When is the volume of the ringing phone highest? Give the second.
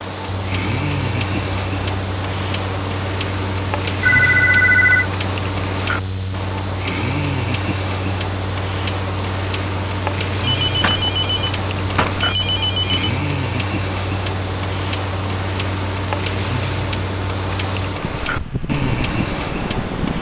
5 s.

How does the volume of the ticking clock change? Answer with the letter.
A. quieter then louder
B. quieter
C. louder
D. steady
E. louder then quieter
D.